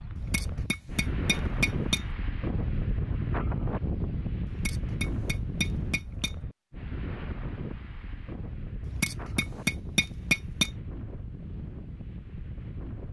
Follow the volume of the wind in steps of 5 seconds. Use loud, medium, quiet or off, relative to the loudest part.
loud, medium, medium.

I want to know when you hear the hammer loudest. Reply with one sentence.
The volume of the hammer peaks at 10 seconds.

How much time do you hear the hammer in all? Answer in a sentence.
You can hear the hammer for 6 seconds altogether.